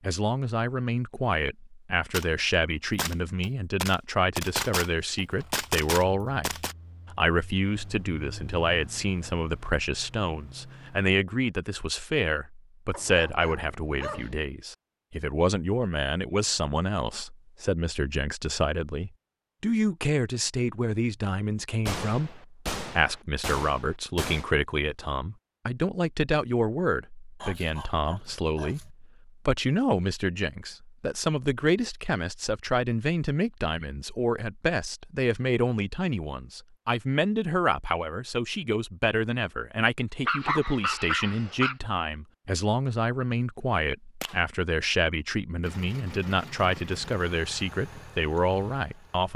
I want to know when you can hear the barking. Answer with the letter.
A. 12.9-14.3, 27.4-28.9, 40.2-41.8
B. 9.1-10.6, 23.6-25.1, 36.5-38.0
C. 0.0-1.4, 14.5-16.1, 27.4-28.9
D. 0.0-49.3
A.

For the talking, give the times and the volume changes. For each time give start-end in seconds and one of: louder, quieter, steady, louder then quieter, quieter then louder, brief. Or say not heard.
0.0-49.3 steady.